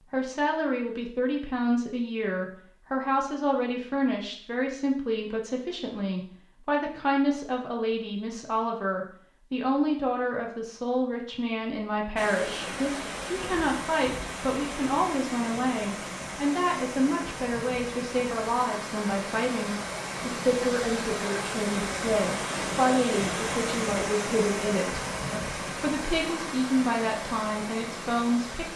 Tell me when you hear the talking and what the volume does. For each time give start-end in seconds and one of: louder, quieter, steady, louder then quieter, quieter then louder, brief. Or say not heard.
0.1-28.7 steady.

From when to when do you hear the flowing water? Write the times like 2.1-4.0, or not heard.
12.2-28.7.